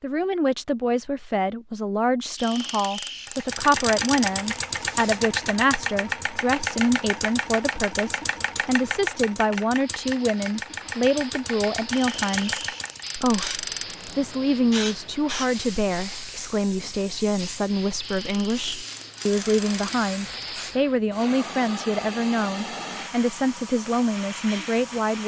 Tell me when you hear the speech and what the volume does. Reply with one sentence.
You can hear the speech from 0.0 to 25.2 s, at a steady volume.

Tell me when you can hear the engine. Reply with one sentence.
You can hear the engine from 3.2 to 13.1 s.